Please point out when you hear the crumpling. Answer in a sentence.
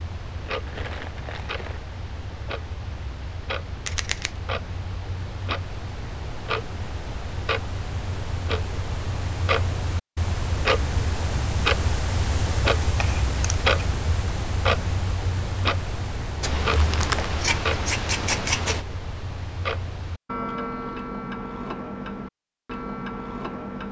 You can hear the crumpling from 0.5 to 1.9 s and from 16.7 to 17.3 s.